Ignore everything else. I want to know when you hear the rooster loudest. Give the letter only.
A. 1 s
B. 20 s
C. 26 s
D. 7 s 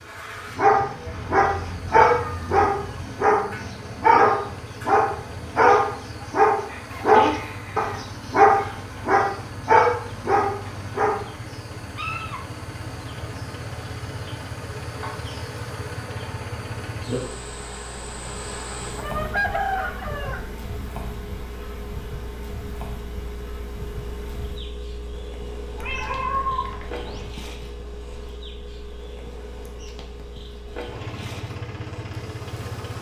B.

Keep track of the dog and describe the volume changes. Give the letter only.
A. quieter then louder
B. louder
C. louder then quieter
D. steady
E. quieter
D.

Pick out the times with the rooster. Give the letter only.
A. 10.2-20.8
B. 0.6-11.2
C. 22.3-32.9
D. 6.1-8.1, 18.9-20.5
D.